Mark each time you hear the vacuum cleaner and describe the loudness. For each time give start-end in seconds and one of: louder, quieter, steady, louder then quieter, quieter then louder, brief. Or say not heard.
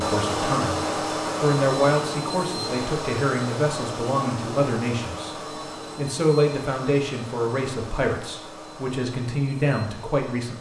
0.0-10.5 quieter.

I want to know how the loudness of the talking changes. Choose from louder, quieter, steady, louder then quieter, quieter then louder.
steady.